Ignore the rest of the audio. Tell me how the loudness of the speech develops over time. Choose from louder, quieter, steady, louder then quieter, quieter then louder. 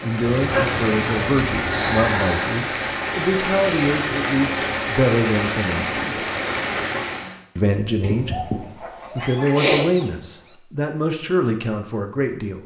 steady.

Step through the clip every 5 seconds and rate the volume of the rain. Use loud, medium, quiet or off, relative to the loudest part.
loud, loud, off.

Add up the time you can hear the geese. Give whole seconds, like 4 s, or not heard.
4 s.